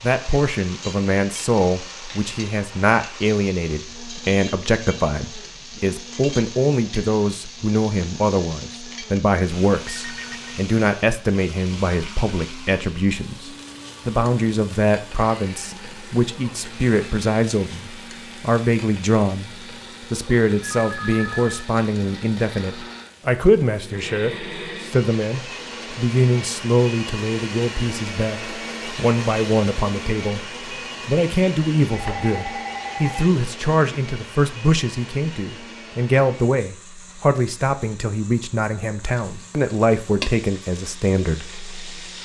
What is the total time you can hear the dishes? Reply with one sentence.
The dishes can't be heard in this clip.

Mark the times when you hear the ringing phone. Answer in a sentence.
You can hear the ringing phone from 9.9 to 10.3 s, from 20.7 to 21.7 s and from 31.9 to 33.3 s.